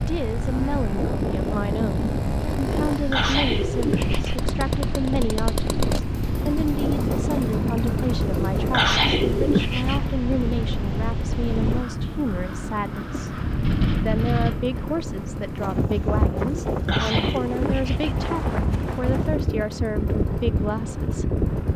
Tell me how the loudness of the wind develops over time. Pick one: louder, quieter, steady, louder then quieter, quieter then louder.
steady.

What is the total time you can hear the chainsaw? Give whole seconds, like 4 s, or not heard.
22 s.